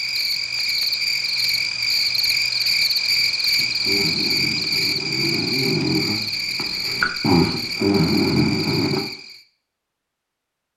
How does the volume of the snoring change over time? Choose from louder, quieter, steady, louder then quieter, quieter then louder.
louder.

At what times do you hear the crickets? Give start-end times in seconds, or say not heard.
0.0-9.4.